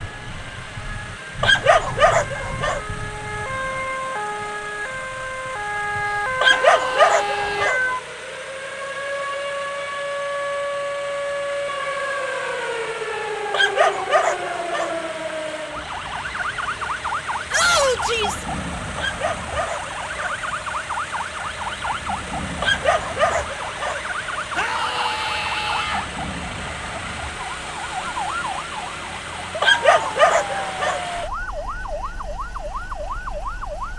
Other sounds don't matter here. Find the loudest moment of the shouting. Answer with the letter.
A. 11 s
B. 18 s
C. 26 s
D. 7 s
B.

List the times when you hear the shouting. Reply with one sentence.
The shouting can be heard from 6.5 to 7.8 s, from 17.5 to 18.4 s and from 24.6 to 26.1 s.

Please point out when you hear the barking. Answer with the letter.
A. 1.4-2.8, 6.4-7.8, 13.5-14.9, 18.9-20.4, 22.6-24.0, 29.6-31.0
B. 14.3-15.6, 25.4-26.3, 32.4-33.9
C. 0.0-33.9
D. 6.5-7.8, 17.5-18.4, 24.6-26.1
A.